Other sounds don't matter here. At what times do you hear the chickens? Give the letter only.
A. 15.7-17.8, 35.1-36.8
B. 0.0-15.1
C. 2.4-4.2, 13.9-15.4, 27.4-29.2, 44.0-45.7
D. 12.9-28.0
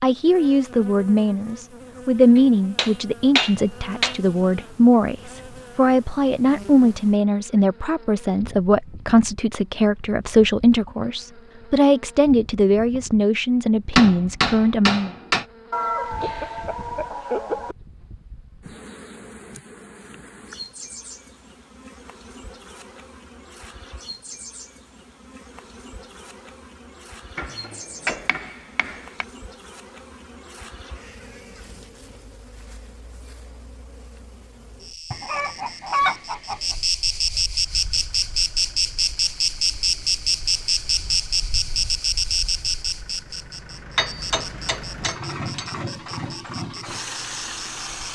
A.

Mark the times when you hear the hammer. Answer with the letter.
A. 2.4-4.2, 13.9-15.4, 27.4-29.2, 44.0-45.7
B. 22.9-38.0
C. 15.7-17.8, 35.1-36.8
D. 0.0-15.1
A.